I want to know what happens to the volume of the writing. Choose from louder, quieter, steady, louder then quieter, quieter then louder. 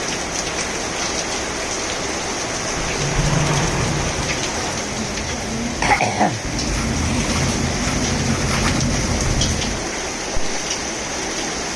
louder.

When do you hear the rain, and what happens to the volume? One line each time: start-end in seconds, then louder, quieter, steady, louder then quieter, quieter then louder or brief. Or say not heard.
0.0-11.7 steady.